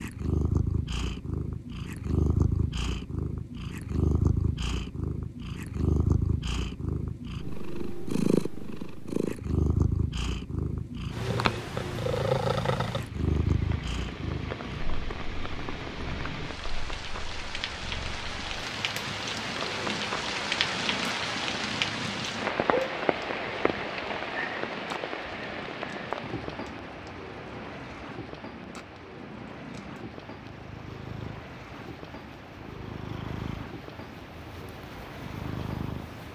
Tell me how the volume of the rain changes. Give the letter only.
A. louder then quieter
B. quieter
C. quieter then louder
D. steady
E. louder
A.